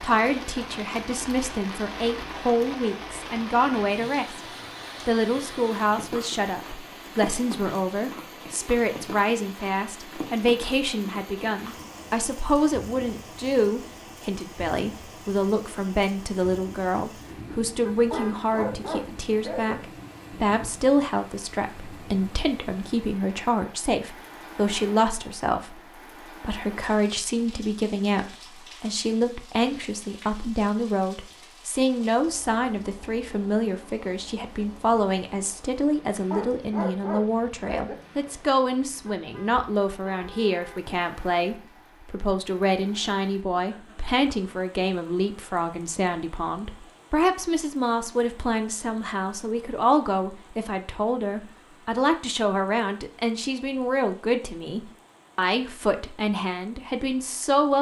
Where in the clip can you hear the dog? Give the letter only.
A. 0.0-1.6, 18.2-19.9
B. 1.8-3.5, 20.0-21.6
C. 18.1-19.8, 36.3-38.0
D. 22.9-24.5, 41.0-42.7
C.